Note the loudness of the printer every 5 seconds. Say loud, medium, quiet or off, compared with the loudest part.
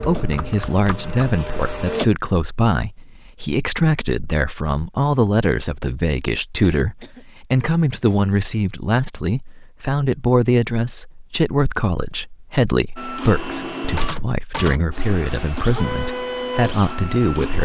loud, off, loud, loud.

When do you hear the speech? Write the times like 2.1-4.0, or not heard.
0.0-17.6.